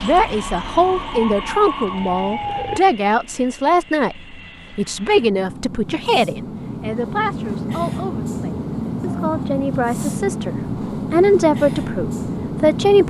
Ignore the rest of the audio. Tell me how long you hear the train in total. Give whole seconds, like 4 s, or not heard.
13 s.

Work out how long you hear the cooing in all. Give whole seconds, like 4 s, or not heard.
not heard.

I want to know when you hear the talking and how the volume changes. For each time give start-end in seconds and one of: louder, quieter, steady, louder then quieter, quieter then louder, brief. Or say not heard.
0.0-13.0 quieter then louder.